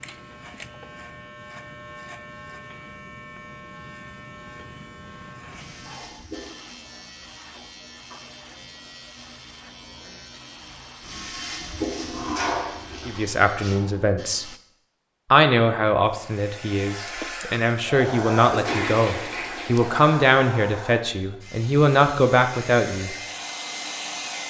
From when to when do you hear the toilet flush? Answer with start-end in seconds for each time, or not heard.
5.5-6.6, 11.0-13.8, 18.4-20.1.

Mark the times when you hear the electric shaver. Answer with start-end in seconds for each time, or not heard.
0.0-14.6.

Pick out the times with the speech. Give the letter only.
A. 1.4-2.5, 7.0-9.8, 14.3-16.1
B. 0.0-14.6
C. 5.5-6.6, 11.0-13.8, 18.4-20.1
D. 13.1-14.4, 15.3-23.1
D.